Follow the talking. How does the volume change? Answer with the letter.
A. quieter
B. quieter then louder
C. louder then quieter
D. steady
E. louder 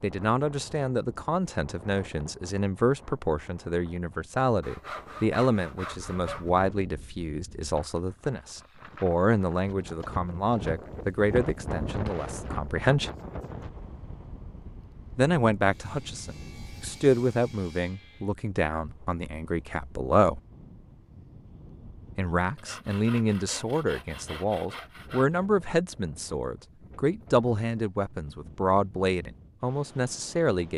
D.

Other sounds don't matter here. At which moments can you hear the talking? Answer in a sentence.
You can hear the talking from 0.0 to 13.1 s, from 15.2 to 20.4 s and from 22.1 to 30.7 s.